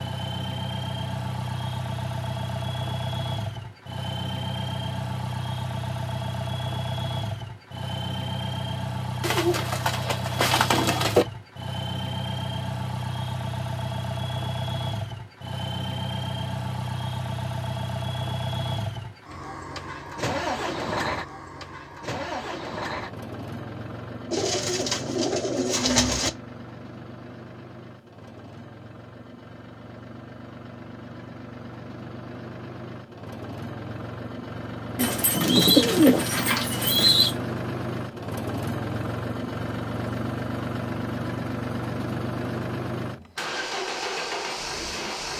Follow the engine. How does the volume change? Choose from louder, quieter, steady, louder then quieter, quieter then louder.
quieter then louder.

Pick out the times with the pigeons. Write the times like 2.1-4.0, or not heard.
9.2-11.2, 24.3-26.3, 35.0-37.4.